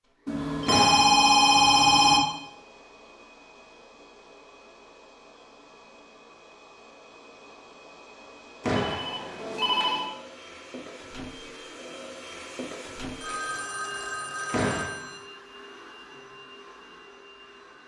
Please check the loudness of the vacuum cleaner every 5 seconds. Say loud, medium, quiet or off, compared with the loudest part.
medium, medium, loud, medium.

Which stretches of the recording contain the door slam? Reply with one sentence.
You can hear the door slam from 0.7 to 1.1 s, from 8.6 to 9.1 s and from 14.5 to 14.9 s.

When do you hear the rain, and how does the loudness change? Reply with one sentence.
You can't hear the rain here.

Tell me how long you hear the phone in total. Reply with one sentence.
You can hear the phone for 5 seconds altogether.